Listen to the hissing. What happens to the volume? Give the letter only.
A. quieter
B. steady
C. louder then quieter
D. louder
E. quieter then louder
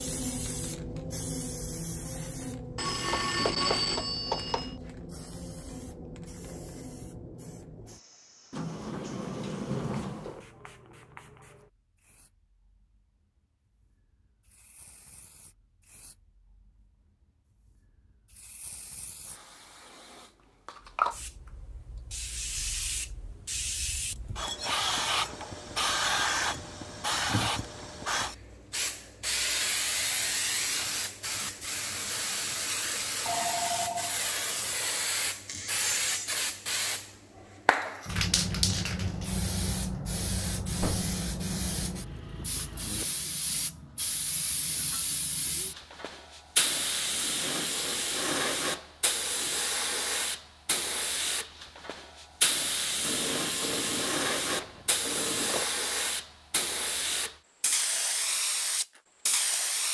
D.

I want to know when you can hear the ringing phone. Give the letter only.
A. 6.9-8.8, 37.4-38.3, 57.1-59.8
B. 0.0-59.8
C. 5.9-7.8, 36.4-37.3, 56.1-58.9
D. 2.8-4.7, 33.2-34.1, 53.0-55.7
D.